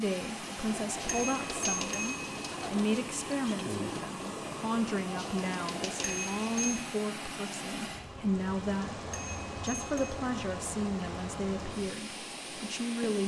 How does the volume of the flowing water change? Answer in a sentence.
The loudness of the flowing water stays about the same.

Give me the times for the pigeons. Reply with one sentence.
The pigeons can be heard from 0.5 to 6.8 s.